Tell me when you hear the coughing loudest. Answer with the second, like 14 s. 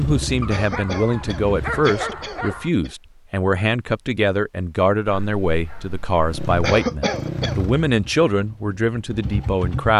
7 s.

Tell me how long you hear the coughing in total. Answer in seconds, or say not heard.
3 s.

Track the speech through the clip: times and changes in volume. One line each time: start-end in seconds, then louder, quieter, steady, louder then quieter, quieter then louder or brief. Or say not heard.
0.0-9.9 steady.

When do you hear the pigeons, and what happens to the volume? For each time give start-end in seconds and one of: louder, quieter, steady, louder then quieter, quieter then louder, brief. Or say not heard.
not heard.